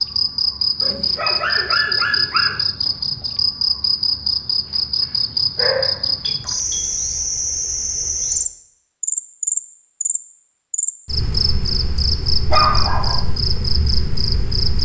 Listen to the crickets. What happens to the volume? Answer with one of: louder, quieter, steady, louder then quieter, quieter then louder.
steady.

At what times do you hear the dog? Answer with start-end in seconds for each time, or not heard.
0.8-2.6, 5.5-6.9, 12.5-13.2.